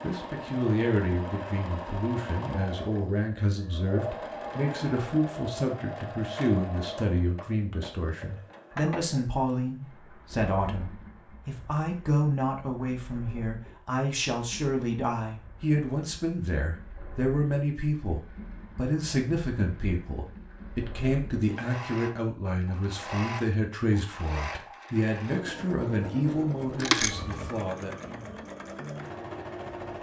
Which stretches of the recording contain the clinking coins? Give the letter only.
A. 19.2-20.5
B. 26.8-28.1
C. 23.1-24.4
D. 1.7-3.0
B.